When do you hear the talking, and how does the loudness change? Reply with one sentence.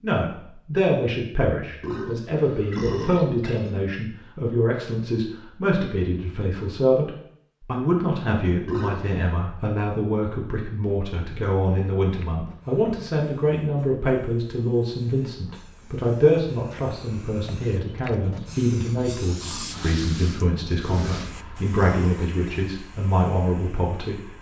You can hear the talking from 0.0 to 24.3 s, at a steady volume.